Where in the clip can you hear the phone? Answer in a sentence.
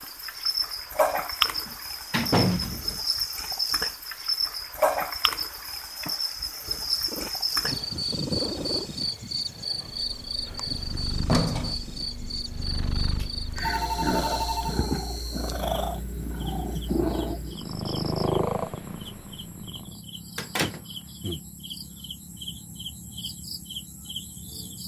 The phone can be heard from 13.2 to 14.8 s.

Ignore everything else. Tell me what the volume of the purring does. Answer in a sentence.
The volume of the purring goes down, then up.